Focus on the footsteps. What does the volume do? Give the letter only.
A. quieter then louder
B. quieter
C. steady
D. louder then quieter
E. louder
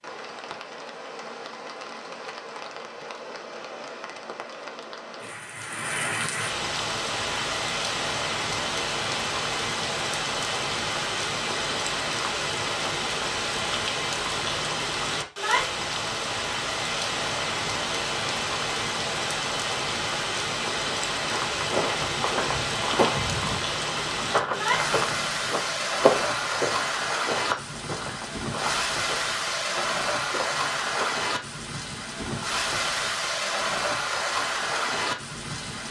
B.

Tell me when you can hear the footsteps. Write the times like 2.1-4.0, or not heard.
21.3-31.2.